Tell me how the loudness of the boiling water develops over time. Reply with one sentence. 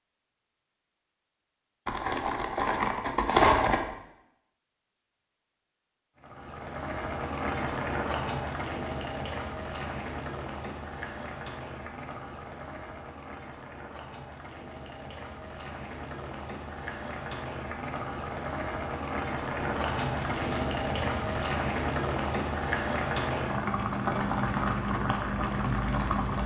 The loudness of the boiling water goes down, then up.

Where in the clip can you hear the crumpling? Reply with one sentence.
The crumpling can be heard from 1.9 to 3.9 s and from 19.6 to 21.4 s.